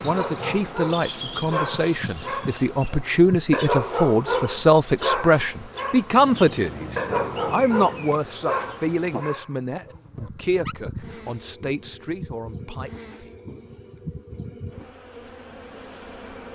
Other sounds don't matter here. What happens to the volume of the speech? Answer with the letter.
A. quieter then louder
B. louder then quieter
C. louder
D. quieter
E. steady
B.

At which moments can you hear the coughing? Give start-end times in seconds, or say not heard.
not heard.